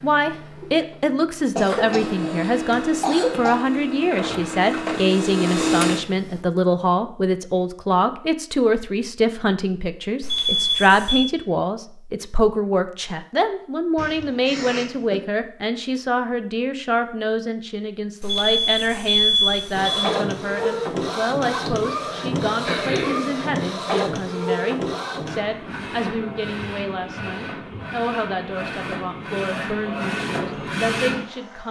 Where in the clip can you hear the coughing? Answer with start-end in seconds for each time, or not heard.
1.6-3.5, 13.9-15.2, 22.6-23.3.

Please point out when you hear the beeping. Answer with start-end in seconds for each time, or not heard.
10.2-11.3, 18.2-20.1.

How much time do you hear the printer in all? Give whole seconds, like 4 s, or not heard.
18 s.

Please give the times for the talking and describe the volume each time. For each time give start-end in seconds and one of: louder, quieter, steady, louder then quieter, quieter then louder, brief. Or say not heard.
0.0-31.6 quieter.